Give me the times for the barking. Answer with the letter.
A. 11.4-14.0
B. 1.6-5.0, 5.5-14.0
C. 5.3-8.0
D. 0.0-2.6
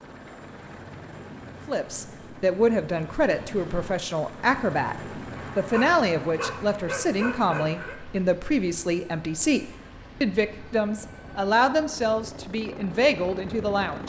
C.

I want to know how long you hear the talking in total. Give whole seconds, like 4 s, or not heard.
12 s.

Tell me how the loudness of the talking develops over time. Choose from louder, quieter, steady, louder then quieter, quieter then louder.
steady.